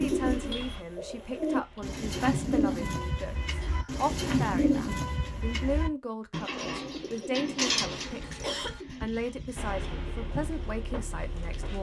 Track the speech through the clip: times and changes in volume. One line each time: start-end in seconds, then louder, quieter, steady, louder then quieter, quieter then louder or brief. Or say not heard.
0.0-11.7 steady.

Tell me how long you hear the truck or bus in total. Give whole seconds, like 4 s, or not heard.
4 s.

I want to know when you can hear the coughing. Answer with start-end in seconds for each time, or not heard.
3.6-4.0, 7.6-8.8.